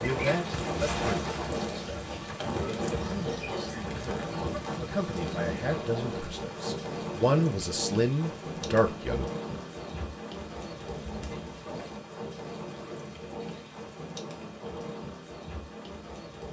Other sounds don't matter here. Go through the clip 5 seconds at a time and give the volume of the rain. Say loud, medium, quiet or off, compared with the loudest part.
loud, loud, medium, medium.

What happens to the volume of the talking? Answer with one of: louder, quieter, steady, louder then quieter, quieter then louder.
louder.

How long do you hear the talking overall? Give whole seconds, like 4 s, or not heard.
9 s.